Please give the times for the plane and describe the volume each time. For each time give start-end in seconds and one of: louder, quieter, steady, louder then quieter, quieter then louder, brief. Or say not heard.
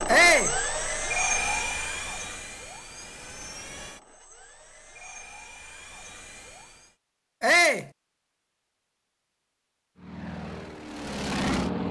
0.0-7.0 quieter
10.0-11.8 brief.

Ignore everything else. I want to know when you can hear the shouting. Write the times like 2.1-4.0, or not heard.
0.1-0.6, 7.4-7.8.